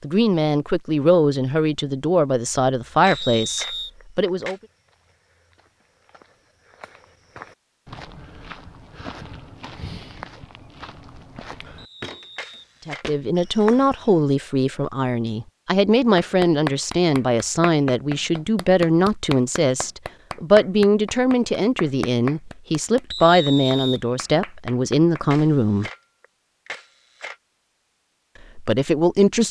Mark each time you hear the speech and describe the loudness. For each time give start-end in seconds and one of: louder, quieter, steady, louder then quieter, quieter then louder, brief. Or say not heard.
0.0-4.5 quieter
12.8-25.9 steady
28.6-29.4 brief.